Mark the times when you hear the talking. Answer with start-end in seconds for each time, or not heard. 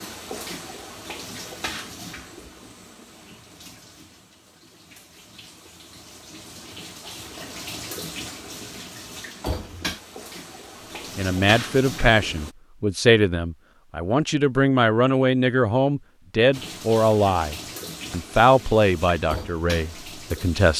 11.2-20.7.